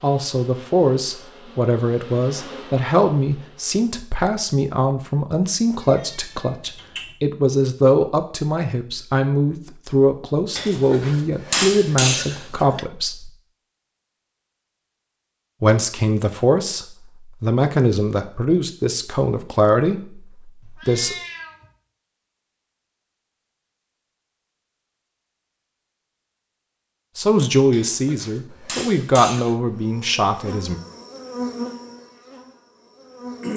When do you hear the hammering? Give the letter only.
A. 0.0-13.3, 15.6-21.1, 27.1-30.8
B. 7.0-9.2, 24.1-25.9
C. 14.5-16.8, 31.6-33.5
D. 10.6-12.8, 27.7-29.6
D.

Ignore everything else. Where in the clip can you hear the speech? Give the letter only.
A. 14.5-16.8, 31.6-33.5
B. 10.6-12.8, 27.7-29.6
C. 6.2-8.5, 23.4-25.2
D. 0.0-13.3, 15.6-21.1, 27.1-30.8
D.